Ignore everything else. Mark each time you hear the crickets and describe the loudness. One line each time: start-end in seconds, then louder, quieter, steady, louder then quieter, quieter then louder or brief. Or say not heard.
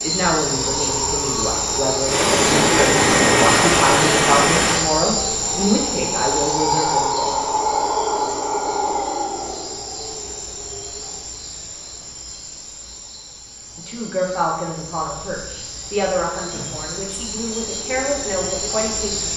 0.0-19.3 quieter then louder.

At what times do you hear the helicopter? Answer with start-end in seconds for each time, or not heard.
2.0-4.8.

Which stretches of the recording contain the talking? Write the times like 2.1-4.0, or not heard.
0.0-7.4, 13.8-19.3.